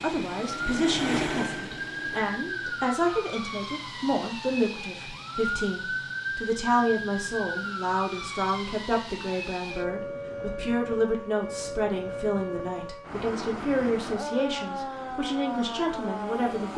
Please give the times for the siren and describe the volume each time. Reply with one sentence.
You can hear the siren from 0.0 to 16.7 s, at a steady volume.